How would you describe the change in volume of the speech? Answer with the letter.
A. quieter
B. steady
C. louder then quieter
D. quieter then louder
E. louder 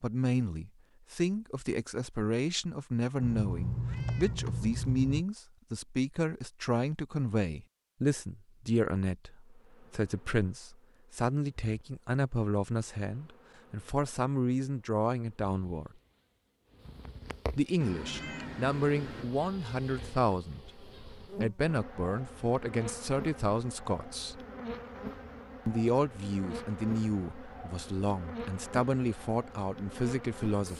B.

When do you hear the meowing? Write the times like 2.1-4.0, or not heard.
3.2-5.2, 17.8-19.3.